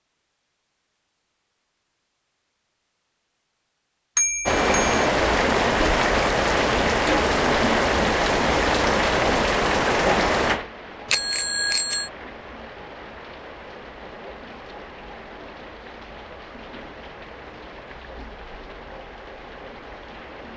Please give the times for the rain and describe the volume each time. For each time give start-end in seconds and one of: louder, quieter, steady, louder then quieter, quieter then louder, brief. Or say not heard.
4.5-20.5 quieter.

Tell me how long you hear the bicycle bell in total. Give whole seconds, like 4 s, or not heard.
2 s.